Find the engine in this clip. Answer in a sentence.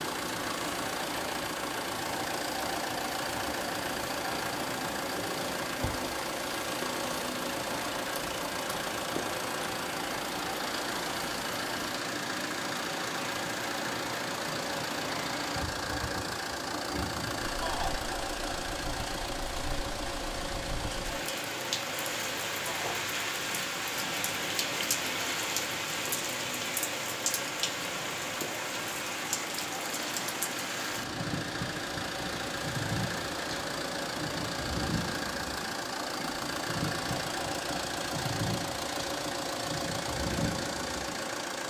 The engine can be heard from 0.0 to 41.6 s.